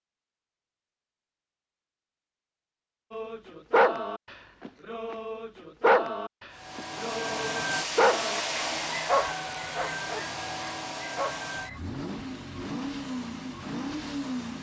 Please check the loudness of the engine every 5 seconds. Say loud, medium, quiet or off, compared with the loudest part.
off, loud, loud.